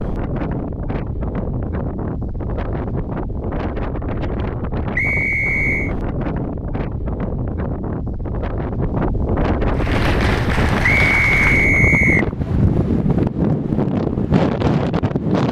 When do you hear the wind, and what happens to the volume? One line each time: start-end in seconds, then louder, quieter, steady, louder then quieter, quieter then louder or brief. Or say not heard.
0.0-15.4 louder.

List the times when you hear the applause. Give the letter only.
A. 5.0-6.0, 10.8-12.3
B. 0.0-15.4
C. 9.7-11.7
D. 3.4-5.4
C.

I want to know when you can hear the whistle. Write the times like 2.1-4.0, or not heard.
5.0-6.0, 10.8-12.3.